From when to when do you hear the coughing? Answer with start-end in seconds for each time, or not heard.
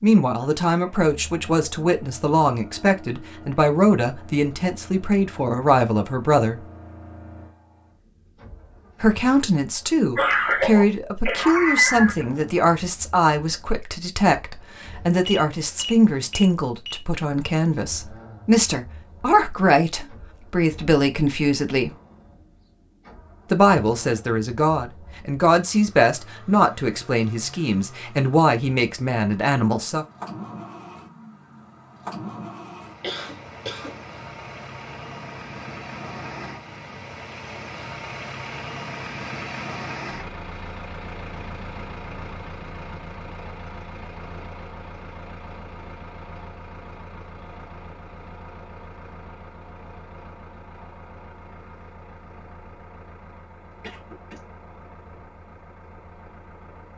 10.2-12.2, 33.0-34.0, 53.8-54.4.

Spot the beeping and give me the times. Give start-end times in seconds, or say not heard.
15.2-17.0.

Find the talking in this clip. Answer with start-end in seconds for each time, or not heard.
0.0-6.6, 9.0-21.9, 23.5-30.1.